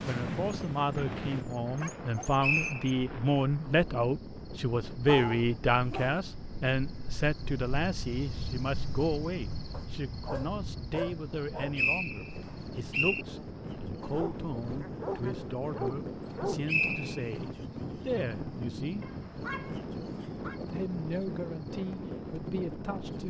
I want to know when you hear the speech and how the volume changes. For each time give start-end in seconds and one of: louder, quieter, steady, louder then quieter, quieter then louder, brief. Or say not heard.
0.0-19.1 quieter
20.6-23.2 brief.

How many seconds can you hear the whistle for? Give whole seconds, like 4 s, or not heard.
3 s.